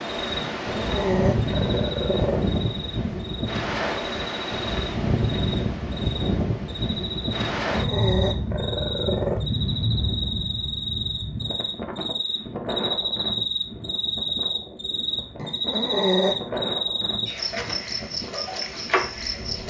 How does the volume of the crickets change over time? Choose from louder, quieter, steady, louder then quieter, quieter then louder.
louder.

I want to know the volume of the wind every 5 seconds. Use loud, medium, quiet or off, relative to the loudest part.
loud, loud, medium, medium.